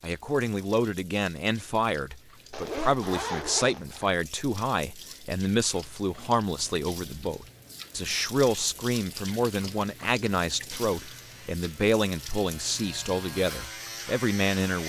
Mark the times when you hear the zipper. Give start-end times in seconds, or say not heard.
2.5-4.2.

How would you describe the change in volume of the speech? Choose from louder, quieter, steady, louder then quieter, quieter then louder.
steady.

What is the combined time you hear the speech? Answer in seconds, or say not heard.
15 s.